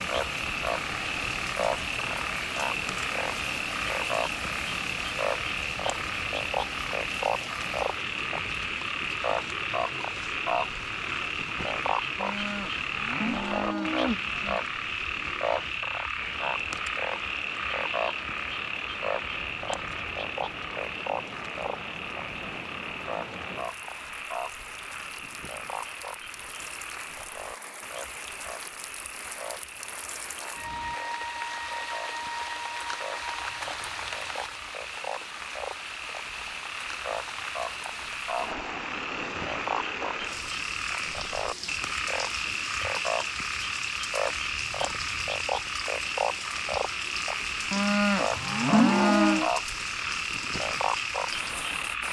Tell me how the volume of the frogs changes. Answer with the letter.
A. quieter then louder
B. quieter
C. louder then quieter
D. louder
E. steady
A.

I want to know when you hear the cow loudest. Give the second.
49 s.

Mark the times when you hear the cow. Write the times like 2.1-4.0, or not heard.
12.2-14.6, 47.7-49.5.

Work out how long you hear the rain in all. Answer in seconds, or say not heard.
52 s.